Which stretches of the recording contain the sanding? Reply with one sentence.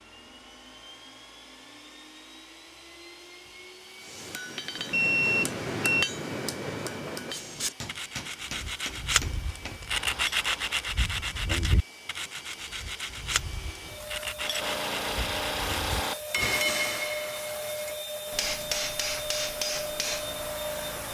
You can hear the sanding from 7.3 to 16.0 s.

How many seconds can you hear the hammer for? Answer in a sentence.
You can hear the hammer for 14 seconds altogether.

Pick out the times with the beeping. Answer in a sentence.
You can hear the beeping from 4.9 to 6.1 s.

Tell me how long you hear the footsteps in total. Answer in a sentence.
You can't hear the footsteps here.